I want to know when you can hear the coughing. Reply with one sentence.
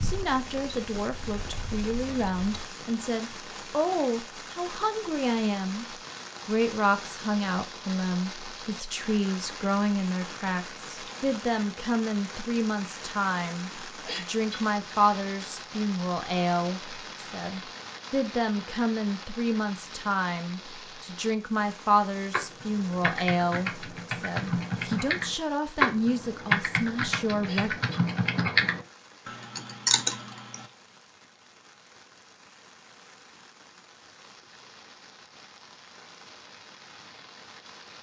The coughing can be heard from 14.1 to 14.6 s and from 27.4 to 28.1 s.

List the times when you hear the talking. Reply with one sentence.
The talking can be heard from 0.0 to 5.8 s and from 6.5 to 27.8 s.